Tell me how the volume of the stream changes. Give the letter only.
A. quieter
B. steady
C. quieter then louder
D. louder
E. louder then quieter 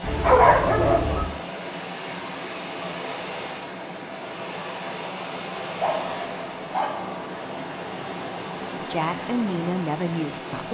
B.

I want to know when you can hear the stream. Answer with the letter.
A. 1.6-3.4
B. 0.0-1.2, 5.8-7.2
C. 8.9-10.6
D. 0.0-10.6
D.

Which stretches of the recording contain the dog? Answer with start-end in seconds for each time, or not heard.
0.0-1.2, 5.8-7.2.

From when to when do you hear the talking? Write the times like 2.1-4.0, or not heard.
8.9-10.6.